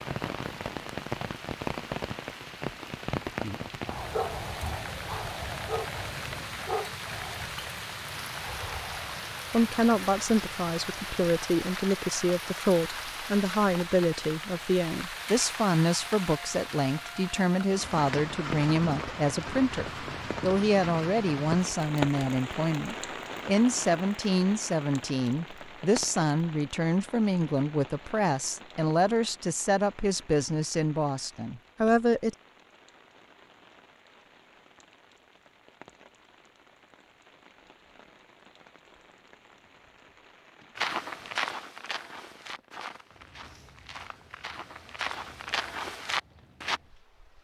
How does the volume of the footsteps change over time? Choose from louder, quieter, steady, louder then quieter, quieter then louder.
quieter then louder.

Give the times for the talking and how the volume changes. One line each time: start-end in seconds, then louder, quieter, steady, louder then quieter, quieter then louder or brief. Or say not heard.
9.5-32.4 steady.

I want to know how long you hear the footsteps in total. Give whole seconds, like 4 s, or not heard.
6 s.